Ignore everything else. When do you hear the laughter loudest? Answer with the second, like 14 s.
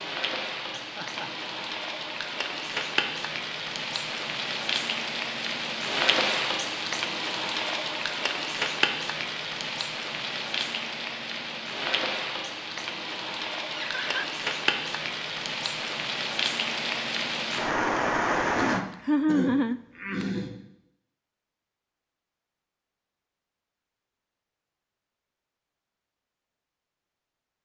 19 s.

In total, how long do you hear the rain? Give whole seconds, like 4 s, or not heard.
19 s.